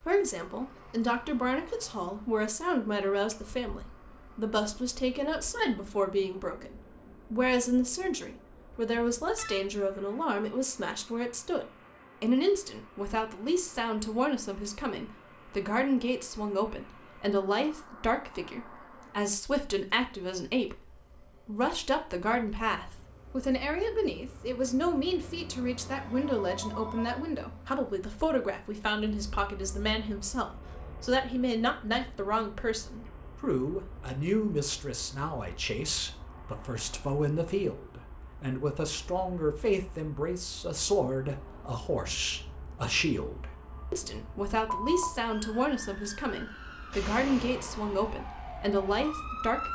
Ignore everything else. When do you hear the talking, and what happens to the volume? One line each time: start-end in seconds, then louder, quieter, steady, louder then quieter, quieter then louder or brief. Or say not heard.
0.1-49.7 steady.